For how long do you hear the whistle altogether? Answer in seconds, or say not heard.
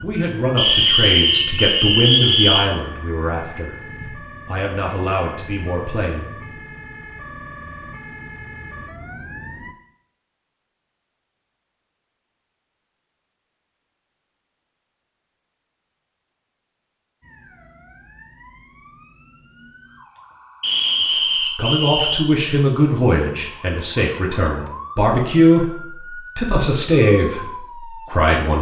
4 s.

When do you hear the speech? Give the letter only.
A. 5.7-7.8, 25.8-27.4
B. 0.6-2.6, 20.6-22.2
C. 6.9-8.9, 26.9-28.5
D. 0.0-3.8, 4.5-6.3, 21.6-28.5
D.